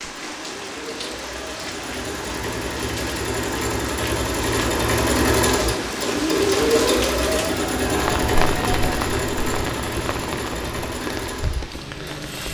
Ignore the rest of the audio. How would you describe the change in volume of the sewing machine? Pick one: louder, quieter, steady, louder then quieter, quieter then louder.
louder then quieter.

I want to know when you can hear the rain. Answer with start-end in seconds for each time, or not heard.
0.0-12.4.